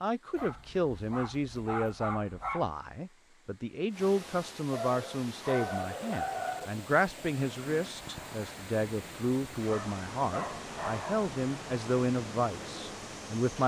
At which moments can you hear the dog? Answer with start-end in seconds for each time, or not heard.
0.3-2.7, 4.7-6.7, 9.7-11.3.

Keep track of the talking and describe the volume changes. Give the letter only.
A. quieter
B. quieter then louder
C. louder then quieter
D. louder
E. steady
E.